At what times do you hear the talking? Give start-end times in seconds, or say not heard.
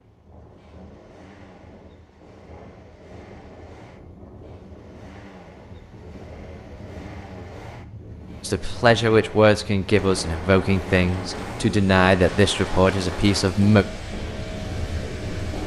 8.4-13.8.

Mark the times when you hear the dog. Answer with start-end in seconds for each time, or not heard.
not heard.